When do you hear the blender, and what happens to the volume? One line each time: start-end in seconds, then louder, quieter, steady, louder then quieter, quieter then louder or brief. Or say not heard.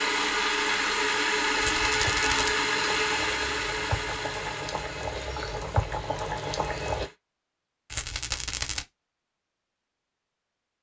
0.0-7.2 quieter.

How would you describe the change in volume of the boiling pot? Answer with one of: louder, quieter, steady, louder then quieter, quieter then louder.
louder.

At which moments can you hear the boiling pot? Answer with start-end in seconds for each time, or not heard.
0.0-7.1.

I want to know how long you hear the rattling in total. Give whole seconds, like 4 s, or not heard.
2 s.